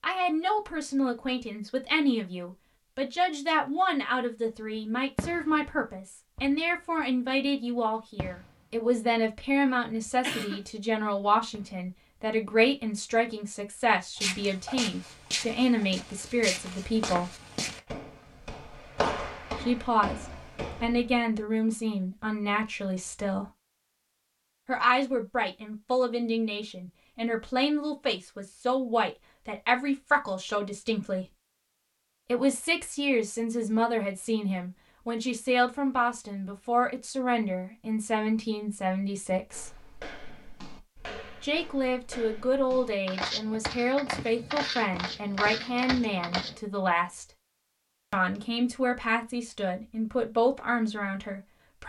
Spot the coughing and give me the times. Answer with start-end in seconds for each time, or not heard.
10.2-10.6.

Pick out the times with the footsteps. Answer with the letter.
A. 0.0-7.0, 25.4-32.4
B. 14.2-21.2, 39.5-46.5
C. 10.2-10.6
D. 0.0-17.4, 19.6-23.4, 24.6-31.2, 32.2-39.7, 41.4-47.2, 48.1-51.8
B.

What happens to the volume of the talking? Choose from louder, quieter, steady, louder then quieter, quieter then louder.
steady.